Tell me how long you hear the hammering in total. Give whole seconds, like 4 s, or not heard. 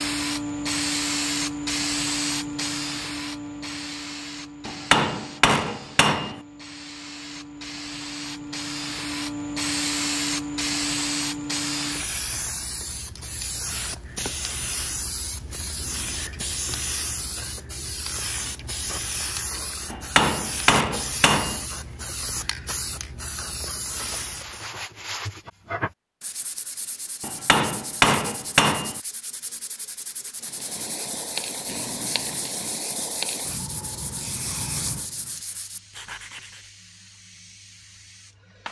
5 s.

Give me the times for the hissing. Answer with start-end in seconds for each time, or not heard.
0.0-24.8, 30.4-38.6.